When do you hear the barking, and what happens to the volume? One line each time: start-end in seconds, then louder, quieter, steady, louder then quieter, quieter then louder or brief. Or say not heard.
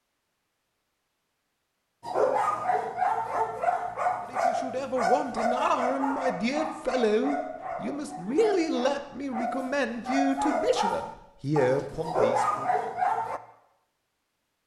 2.0-13.4 quieter then louder.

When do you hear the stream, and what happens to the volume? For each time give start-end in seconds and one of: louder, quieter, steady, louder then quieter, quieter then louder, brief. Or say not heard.
not heard.